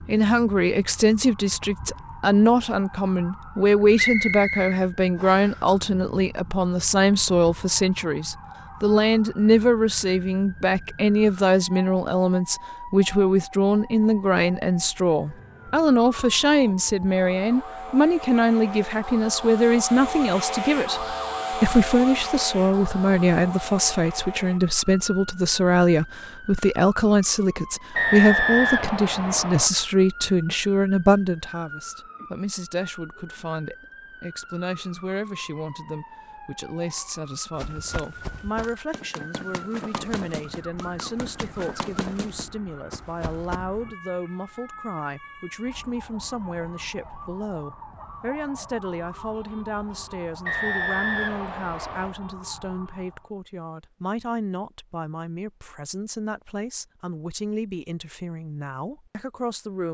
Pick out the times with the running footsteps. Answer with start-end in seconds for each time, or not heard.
37.5-43.6.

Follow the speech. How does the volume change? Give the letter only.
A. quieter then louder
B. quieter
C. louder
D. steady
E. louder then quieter
B.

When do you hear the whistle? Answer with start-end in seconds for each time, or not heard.
4.0-5.5, 27.9-29.7, 50.5-52.1.